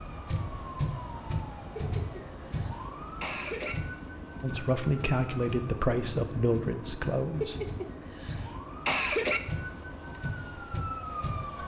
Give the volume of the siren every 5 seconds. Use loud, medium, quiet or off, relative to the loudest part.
loud, medium, loud.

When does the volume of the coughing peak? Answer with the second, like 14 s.
9 s.